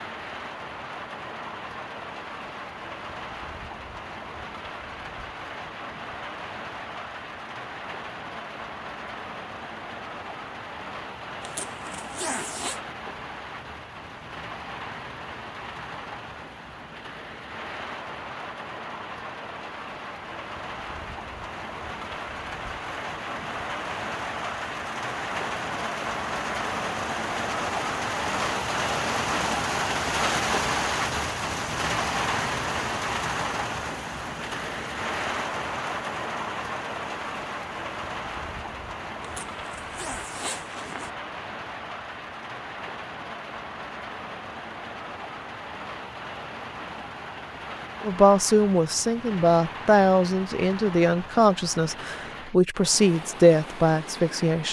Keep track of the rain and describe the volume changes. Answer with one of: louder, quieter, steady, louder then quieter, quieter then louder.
louder then quieter.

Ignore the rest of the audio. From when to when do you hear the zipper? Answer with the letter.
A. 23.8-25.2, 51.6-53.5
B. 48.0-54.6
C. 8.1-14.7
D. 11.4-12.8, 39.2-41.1
D.